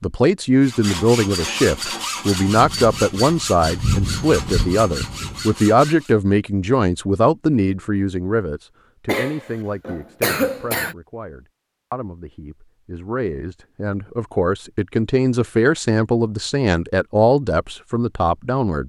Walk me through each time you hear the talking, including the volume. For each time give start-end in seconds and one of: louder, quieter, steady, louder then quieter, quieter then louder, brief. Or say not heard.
0.0-18.8 quieter then louder.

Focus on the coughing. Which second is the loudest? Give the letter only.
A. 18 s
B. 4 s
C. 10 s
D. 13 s
C.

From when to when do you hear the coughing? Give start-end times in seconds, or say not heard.
9.1-10.9.